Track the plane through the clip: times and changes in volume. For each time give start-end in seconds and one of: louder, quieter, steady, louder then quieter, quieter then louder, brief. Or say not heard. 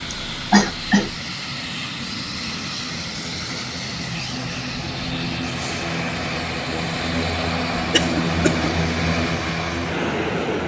0.0-10.6 louder.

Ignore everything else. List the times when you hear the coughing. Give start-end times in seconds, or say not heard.
0.3-1.1, 7.9-8.7.